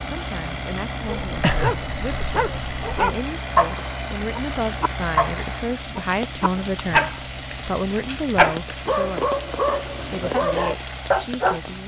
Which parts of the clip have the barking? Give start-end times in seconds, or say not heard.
1.2-11.6.